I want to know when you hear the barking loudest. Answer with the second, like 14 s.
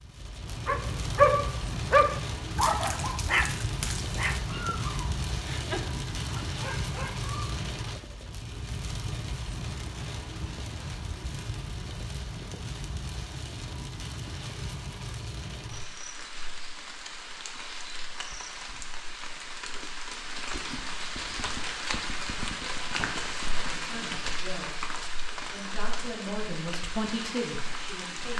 1 s.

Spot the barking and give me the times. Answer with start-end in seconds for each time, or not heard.
0.5-8.3.